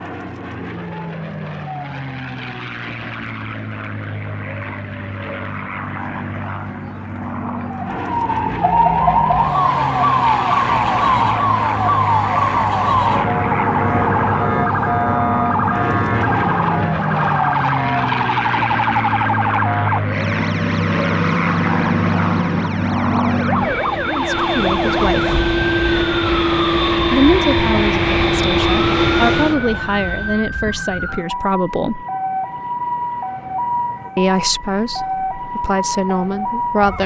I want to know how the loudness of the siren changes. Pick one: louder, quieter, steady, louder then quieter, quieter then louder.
quieter.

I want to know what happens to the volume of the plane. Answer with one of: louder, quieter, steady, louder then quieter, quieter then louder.
louder.